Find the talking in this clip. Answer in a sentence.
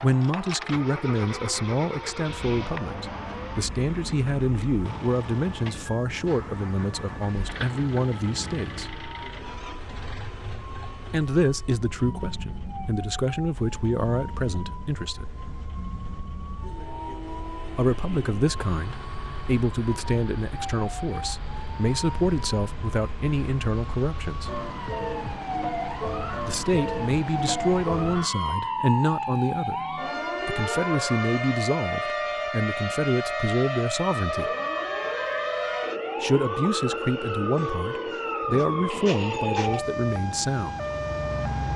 The talking can be heard from 0.0 to 8.9 s, from 11.1 to 15.2 s, from 17.8 to 24.6 s, from 26.4 to 34.5 s and from 36.2 to 40.9 s.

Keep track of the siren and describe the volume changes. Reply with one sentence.
The volume of the siren goes up.